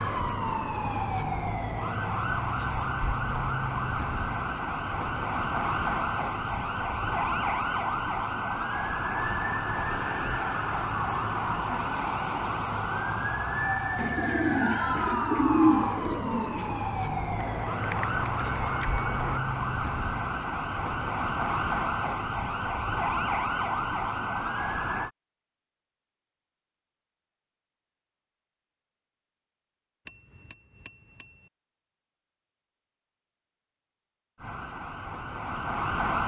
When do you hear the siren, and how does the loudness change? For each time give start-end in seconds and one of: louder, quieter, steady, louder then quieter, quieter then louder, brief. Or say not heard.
0.0-25.1 steady
34.4-36.2 brief.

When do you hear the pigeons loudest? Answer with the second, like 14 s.
16 s.